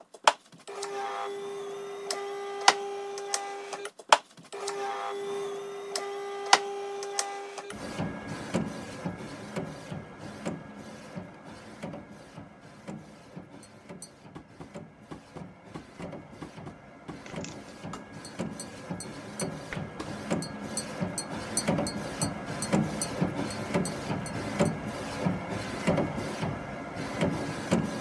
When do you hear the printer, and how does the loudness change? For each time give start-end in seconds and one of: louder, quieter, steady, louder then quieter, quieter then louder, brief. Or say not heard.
0.0-27.9 quieter then louder.